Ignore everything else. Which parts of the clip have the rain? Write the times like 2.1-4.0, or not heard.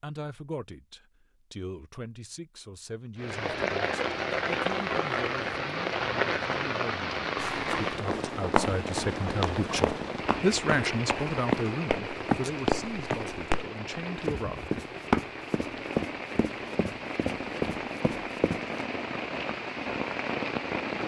3.1-21.0.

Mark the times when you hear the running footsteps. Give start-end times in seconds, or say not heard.
7.3-13.7, 14.2-18.6.